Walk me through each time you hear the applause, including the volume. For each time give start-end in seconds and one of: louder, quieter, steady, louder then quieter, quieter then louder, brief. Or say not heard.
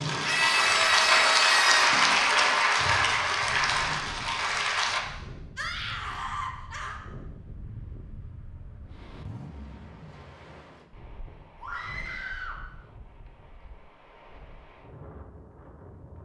0.0-5.0 quieter.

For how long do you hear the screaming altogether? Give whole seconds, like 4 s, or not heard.
4 s.